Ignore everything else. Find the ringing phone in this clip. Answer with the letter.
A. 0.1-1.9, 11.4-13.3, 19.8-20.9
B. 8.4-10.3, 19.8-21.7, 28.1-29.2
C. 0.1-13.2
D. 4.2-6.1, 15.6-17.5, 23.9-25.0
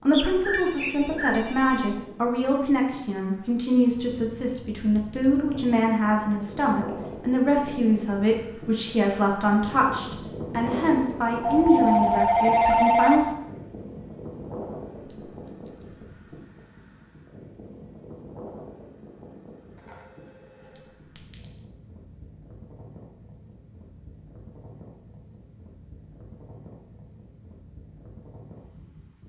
A.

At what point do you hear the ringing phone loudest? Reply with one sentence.
The volume of the ringing phone peaks at 13 seconds.